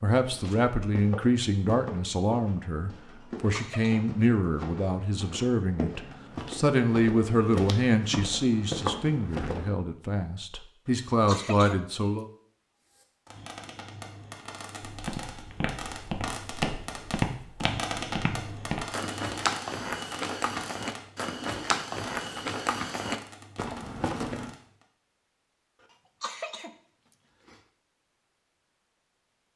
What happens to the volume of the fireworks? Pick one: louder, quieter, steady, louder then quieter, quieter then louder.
louder then quieter.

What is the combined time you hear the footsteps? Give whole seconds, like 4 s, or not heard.
19 s.